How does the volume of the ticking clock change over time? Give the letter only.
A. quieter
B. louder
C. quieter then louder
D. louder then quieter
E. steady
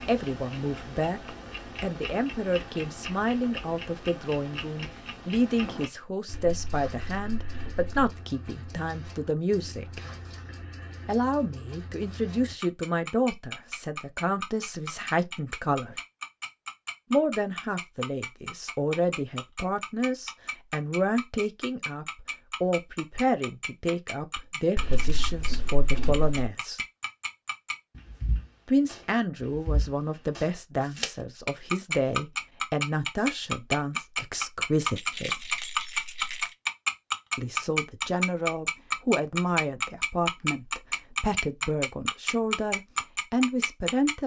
B.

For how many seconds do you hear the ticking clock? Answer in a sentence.
The ticking clock can be heard for 44 seconds in total.